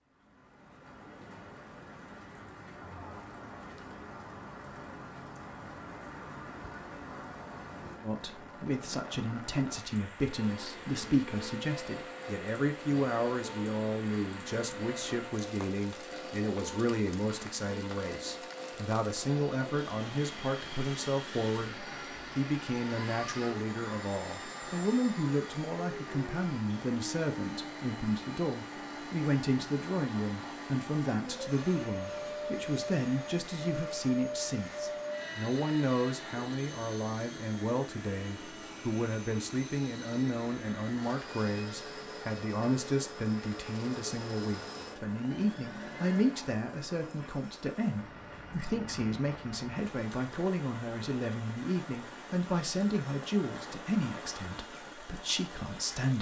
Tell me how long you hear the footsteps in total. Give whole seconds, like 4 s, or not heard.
not heard.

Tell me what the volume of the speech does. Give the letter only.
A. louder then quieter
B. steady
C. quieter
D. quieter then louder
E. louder
B.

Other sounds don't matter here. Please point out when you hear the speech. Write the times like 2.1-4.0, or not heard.
8.0-56.1.